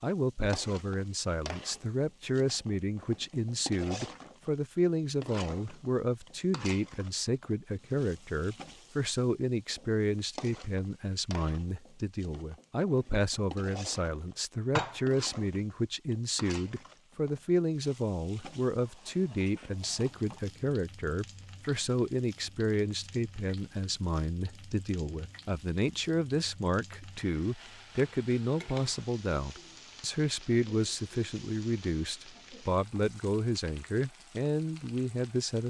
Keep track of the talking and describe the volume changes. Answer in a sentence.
The volume of the talking stays about the same.